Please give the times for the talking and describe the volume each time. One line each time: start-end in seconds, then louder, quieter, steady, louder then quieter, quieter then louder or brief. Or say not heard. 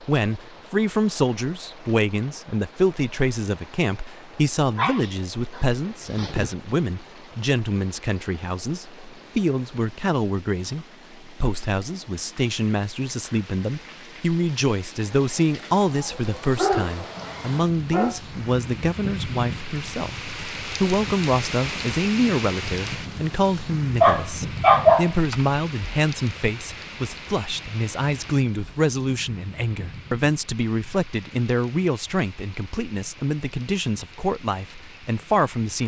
0.0-35.8 steady.